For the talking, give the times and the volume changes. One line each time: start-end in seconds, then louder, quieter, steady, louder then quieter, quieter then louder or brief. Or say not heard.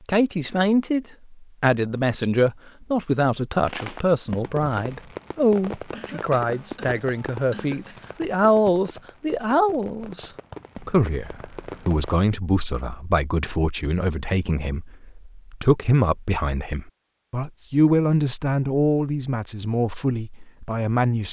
0.1-21.2 steady.